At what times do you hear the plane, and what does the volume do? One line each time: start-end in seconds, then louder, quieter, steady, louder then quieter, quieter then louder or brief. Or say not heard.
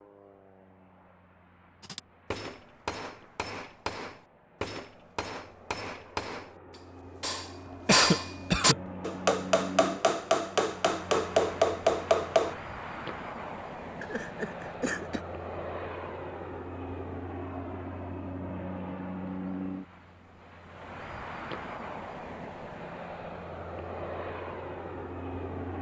0.0-25.7 louder.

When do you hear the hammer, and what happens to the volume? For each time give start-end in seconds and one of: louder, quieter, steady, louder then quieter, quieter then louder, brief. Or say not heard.
1.8-12.6 louder.